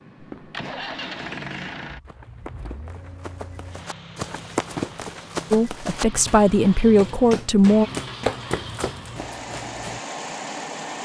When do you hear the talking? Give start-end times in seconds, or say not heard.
5.5-7.9.